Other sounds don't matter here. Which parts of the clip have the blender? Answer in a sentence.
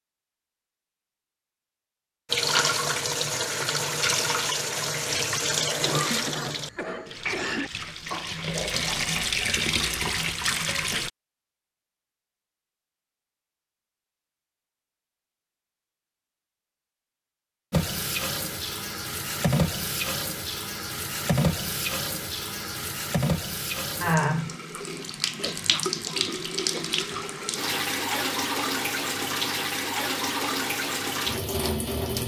You can't hear the blender here.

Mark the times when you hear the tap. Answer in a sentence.
The tap can be heard from 2.3 to 11.1 s and from 17.7 to 32.2 s.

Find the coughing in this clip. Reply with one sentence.
The coughing can be heard from 5.8 to 7.7 s and from 25.4 to 27.1 s.